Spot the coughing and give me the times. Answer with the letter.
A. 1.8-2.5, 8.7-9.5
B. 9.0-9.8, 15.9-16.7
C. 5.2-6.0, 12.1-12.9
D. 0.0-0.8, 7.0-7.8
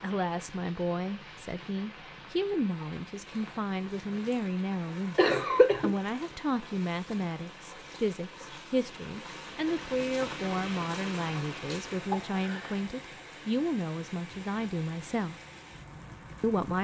C.